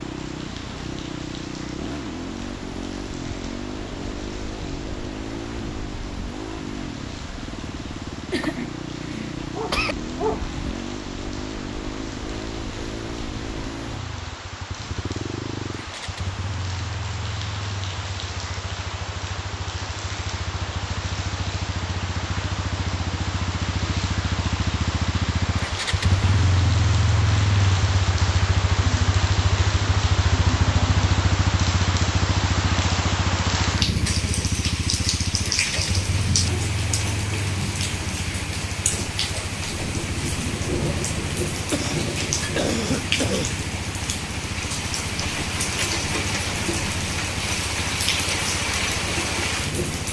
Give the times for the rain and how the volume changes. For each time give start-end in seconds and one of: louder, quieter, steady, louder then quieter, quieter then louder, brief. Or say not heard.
0.0-50.0 louder.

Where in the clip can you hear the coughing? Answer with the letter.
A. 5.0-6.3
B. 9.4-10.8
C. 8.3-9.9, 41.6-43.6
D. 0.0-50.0
C.